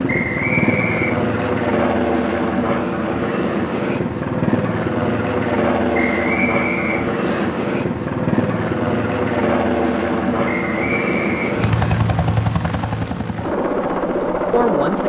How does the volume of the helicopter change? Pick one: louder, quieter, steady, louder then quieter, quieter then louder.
steady.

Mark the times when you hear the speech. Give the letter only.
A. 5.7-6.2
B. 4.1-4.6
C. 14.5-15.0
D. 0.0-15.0
C.